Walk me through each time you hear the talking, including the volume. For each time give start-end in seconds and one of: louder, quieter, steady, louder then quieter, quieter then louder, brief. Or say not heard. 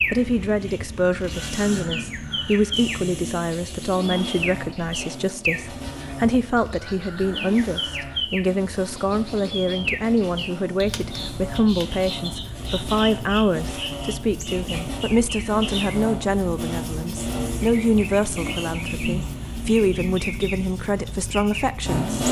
0.1-22.1 steady.